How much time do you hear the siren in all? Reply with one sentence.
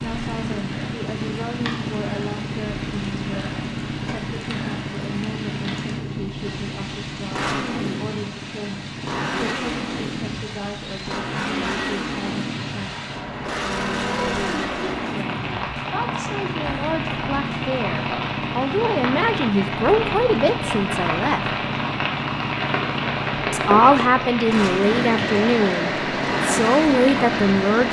The siren can't be heard in this clip.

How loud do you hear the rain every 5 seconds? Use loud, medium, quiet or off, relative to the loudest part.
quiet, quiet, medium, medium, loud, loud.